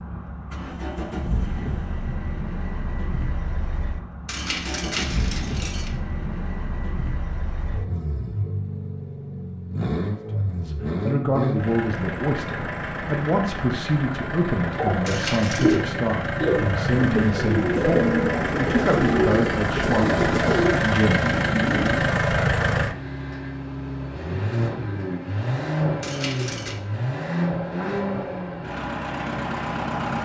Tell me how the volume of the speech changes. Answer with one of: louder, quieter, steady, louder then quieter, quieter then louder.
steady.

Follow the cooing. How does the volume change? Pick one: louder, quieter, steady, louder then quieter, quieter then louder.
steady.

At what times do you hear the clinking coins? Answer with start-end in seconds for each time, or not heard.
4.2-5.9, 15.1-15.8, 26.0-26.8.